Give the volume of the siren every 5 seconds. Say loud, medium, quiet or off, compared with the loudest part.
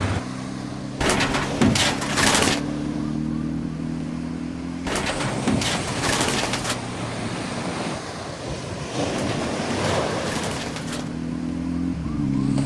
loud, medium, loud.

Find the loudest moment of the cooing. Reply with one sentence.
The loudest moment of the cooing is at 2 seconds.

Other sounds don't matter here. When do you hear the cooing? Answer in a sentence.
You can hear the cooing from 1.0 to 2.6 s, from 4.8 to 6.8 s and from 9.1 to 11.1 s.